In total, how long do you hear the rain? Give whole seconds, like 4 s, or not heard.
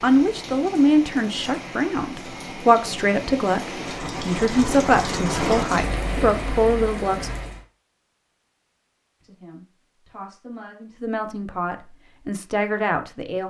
8 s.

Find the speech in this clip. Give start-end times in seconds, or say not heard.
0.0-7.3, 9.2-13.4.